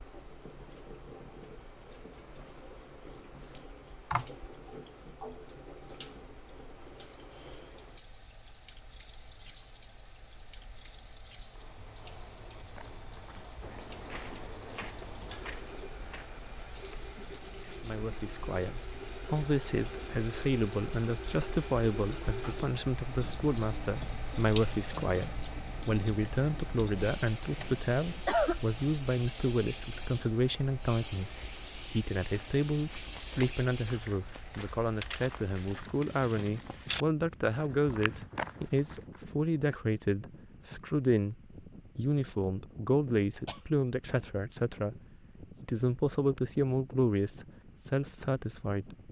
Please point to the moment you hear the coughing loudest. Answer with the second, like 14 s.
28 s.